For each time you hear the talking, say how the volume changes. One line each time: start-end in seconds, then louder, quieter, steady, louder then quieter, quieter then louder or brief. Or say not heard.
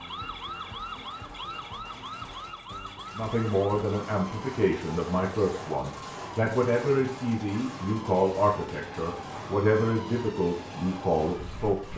3.1-11.9 steady.